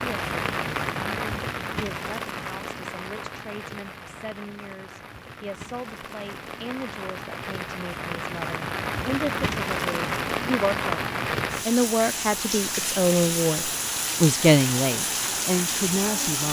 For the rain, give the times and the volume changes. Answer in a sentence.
You can hear the rain from 0.0 to 16.4 s, getting quieter then louder.